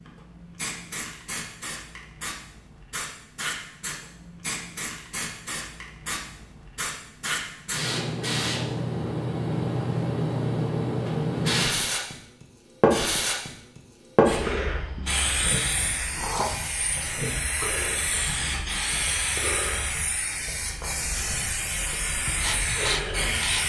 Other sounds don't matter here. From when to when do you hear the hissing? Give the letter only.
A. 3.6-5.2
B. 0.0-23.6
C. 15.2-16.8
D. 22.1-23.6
B.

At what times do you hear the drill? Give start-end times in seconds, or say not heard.
22.1-23.6.